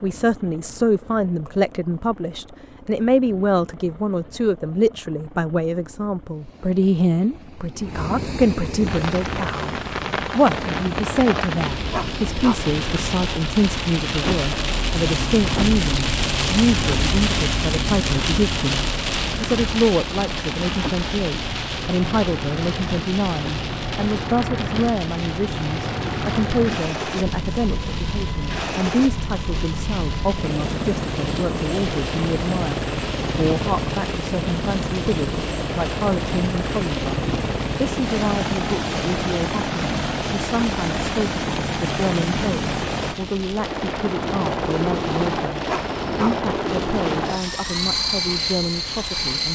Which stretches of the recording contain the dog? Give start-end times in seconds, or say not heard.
11.9-12.7, 45.6-46.4.